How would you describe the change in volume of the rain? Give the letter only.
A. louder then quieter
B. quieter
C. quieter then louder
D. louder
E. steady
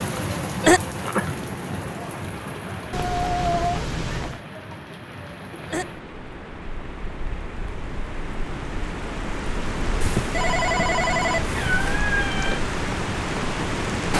C.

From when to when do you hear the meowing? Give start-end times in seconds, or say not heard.
2.9-4.4, 11.5-12.7.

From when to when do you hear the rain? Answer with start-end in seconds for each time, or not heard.
0.0-14.1.